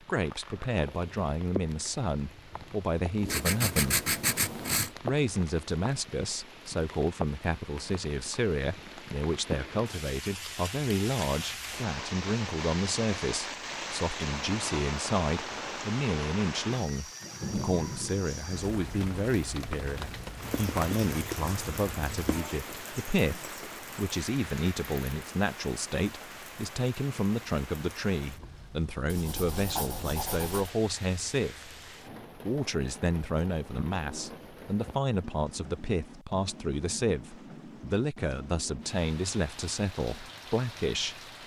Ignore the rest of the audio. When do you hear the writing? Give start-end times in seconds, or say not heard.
3.2-4.9, 20.4-22.4, 29.1-30.8.